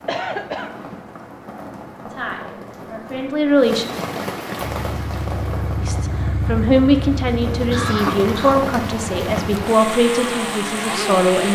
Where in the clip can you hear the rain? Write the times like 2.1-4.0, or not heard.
0.0-11.4.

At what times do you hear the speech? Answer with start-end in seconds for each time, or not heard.
2.0-3.9, 5.8-11.4.